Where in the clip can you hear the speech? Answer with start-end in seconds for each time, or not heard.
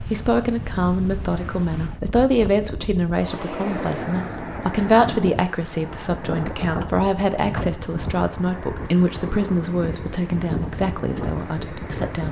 0.0-12.2.